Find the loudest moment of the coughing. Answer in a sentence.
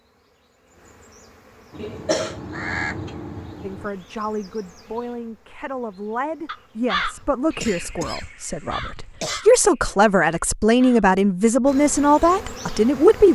The loudest moment of the coughing is at 2 seconds.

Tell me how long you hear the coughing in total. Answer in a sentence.
You can hear the coughing for 3 seconds altogether.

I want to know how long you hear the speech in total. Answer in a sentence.
The speech can be heard for 10 seconds in total.